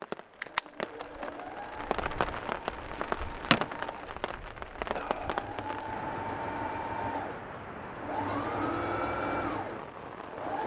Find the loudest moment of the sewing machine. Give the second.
9 s.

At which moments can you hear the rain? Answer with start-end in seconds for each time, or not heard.
0.0-10.6.